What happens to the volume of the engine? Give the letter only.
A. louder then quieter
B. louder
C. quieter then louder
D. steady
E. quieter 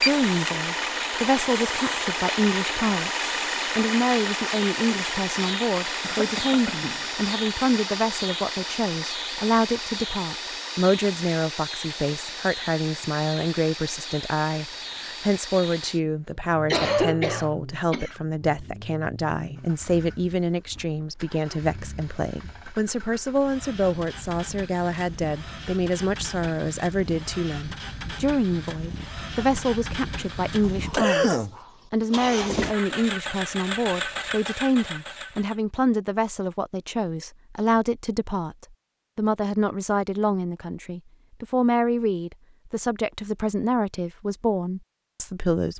C.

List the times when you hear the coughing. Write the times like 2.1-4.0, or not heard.
6.0-7.1, 16.7-18.1, 30.6-31.6.